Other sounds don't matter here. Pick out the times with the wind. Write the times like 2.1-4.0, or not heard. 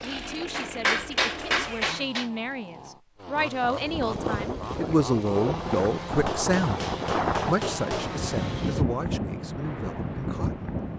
3.6-10.9.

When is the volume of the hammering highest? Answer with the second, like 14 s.
1 s.